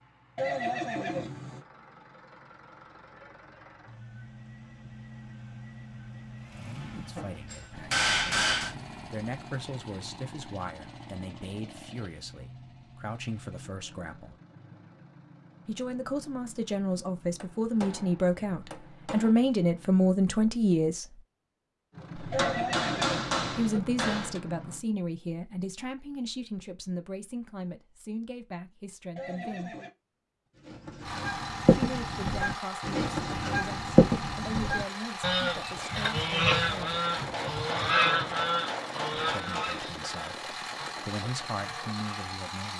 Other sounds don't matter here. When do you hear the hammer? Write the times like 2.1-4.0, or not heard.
7.2-8.8, 17.4-19.4, 22.1-24.4, 37.1-39.8.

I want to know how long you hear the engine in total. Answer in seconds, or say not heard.
35 s.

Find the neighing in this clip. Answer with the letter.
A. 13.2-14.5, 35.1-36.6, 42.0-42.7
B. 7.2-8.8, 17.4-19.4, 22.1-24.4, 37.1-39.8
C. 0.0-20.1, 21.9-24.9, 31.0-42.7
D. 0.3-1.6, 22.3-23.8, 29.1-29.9
D.